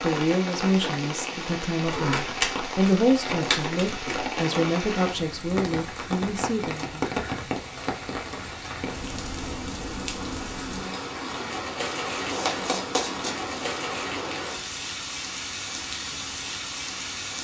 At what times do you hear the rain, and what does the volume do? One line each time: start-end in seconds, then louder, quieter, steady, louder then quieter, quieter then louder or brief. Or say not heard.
0.0-17.3 steady.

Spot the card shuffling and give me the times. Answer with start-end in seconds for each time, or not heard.
1.9-4.3, 12.2-13.7.